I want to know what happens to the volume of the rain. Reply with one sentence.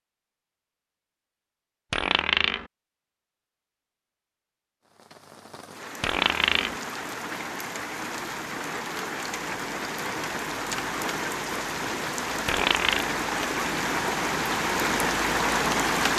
The volume of the rain goes up.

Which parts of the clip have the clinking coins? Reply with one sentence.
You can hear the clinking coins from 1.9 to 2.6 s, from 6.0 to 6.8 s and from 12.4 to 13.1 s.